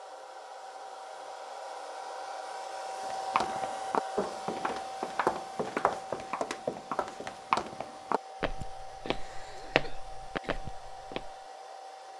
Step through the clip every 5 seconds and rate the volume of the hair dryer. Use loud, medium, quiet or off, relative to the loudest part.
loud, medium, medium.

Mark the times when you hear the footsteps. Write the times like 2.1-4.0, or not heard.
3.0-11.3.